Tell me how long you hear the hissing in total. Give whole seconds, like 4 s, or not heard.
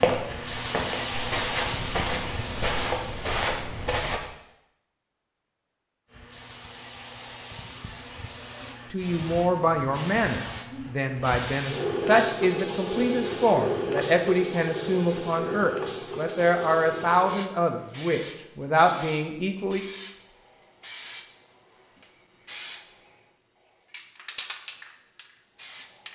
23 s.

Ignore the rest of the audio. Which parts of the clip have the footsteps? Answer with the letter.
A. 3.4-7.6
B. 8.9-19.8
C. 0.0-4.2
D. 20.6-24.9
C.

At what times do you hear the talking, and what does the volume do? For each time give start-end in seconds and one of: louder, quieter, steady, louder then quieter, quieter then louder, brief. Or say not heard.
8.9-19.8 steady.